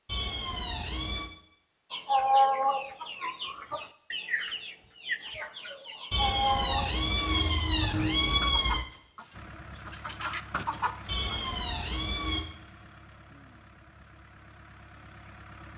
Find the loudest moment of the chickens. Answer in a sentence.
The loudest moment of the chickens is at 2 seconds.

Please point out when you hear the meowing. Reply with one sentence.
You can hear the meowing from 0.1 to 1.3 s, from 6.1 to 8.8 s and from 11.1 to 12.4 s.